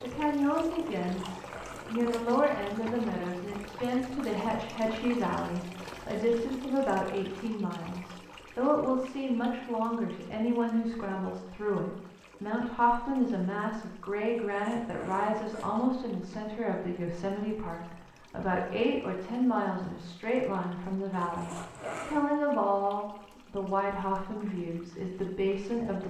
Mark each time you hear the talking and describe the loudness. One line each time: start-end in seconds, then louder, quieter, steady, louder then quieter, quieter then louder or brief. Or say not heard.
0.0-26.0 steady.